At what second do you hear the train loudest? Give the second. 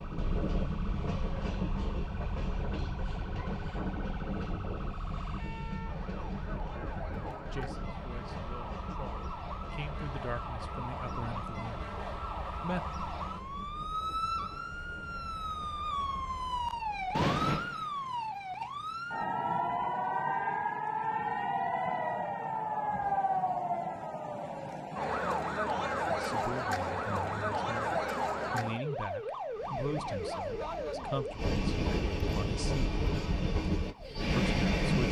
35 s.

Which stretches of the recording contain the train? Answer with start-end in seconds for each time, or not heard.
0.0-17.2, 29.5-35.0.